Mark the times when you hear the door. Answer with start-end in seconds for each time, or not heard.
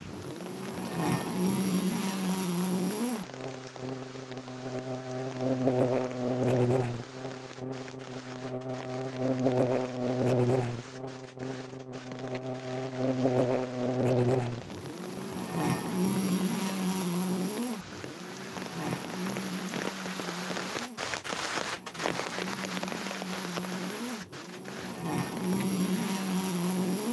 not heard.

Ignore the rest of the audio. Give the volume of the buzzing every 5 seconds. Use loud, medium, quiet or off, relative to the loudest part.
loud, loud, loud, loud, medium, loud.